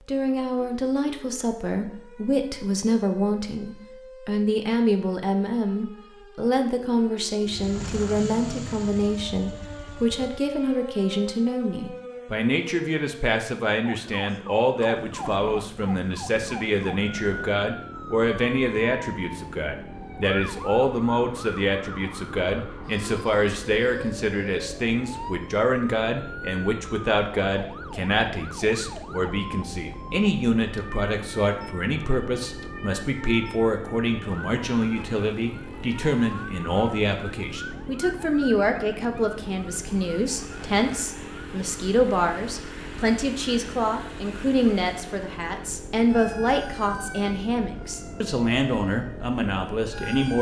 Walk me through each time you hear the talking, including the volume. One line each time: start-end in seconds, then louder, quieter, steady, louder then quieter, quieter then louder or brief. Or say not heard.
0.1-50.3 steady.